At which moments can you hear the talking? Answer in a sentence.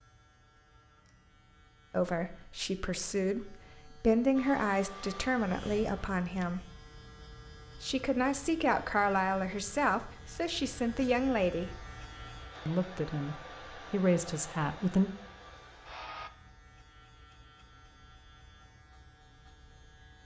The talking can be heard from 1.9 to 6.7 s, from 7.8 to 11.8 s and from 12.7 to 15.1 s.